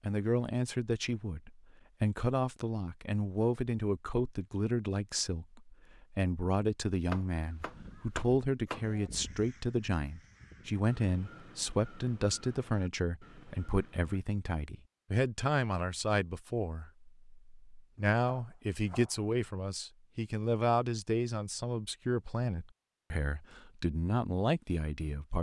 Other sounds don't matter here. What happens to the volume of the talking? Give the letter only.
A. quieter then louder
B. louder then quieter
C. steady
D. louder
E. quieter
C.